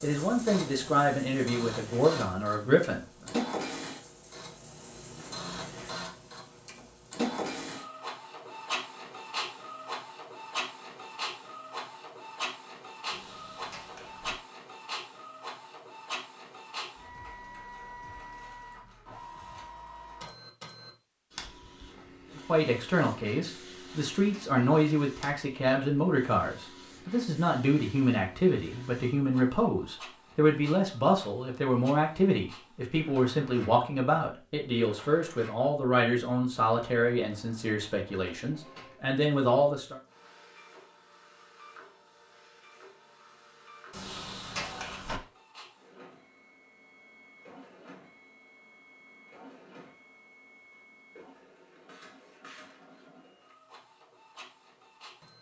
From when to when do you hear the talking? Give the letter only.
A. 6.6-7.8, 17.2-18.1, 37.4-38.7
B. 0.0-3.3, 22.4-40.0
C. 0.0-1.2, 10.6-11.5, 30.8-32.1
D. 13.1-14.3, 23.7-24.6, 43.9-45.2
B.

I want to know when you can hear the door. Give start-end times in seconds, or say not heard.
13.1-14.3, 23.7-24.6, 43.9-45.2.